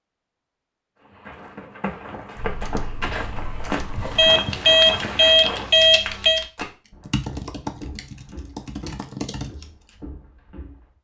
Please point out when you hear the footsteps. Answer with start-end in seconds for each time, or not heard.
1.0-10.9.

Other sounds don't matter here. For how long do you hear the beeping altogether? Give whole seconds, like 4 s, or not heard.
2 s.